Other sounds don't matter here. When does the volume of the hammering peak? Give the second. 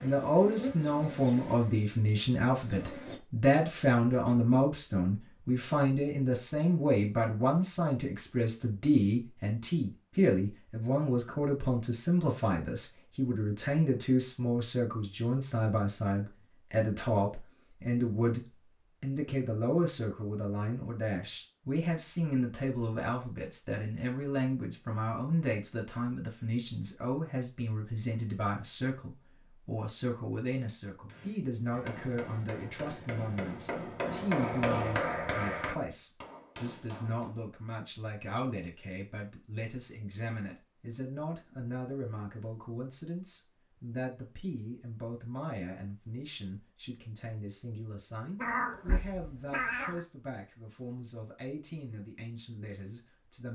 35 s.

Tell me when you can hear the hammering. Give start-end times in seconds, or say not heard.
31.1-37.3.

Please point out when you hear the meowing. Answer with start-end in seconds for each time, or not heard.
48.4-50.0.